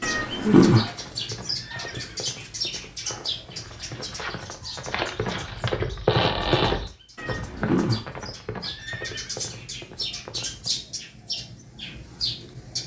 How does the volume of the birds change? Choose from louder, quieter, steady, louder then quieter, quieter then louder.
quieter then louder.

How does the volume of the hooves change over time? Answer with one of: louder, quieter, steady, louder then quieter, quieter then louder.
louder then quieter.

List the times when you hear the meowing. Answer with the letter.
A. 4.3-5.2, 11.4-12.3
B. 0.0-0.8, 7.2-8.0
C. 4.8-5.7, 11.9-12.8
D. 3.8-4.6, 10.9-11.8
B.